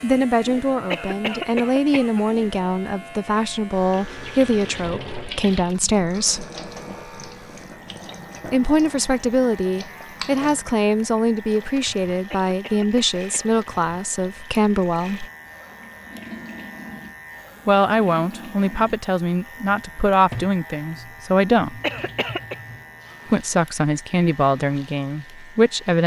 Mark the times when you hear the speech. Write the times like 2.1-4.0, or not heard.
0.0-6.5, 8.4-15.2, 17.6-21.8, 23.2-26.0.